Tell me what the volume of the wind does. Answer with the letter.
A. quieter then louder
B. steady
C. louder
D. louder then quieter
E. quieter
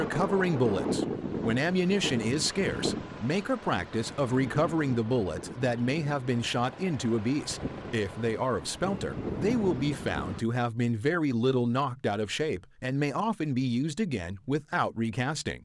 A.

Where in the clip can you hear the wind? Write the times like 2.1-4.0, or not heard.
0.0-10.4.